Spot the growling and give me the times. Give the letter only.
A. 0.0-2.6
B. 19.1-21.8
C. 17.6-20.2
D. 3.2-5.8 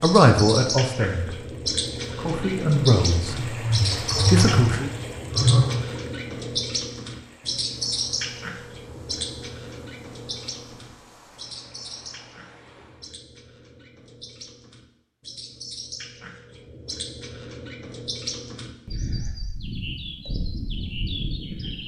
D.